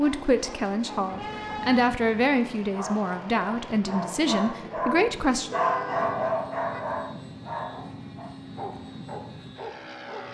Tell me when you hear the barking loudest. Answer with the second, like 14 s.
6 s.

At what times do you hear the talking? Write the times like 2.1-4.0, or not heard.
0.0-5.5.